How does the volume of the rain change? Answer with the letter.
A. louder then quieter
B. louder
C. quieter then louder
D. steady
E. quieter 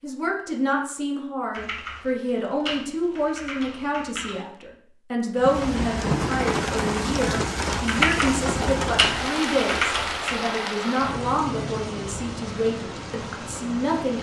E.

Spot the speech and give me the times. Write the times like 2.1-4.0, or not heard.
0.0-14.1.